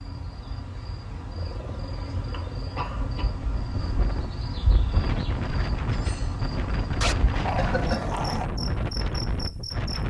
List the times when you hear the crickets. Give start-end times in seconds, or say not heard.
0.0-10.0.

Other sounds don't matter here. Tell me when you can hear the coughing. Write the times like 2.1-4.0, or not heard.
2.3-3.3, 7.5-8.2.